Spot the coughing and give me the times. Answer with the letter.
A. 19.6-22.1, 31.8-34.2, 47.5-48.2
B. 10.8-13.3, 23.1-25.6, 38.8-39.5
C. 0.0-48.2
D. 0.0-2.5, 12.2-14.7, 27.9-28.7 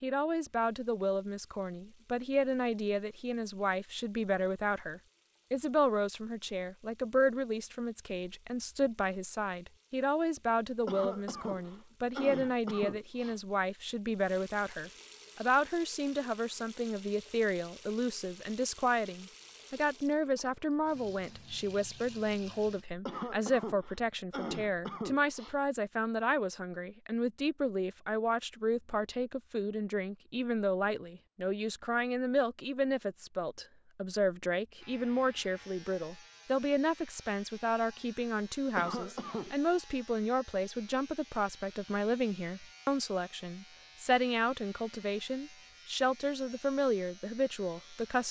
B.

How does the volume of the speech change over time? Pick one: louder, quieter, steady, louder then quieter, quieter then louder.
steady.